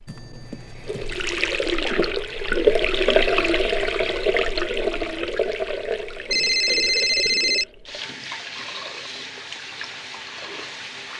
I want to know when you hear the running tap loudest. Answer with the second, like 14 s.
3 s.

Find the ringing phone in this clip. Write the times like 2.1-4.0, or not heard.
0.1-1.4, 6.3-7.7.